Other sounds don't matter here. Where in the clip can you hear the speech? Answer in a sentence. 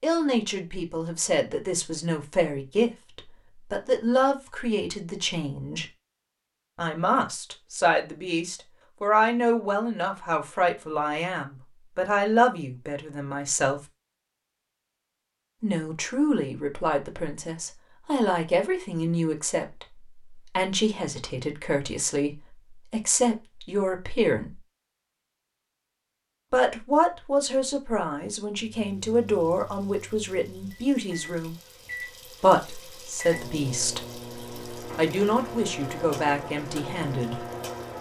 You can hear the speech from 0.0 to 5.8 s, from 6.8 to 13.8 s, from 15.6 to 24.6 s, from 26.5 to 31.6 s, from 32.4 to 34.1 s and from 34.9 to 37.4 s.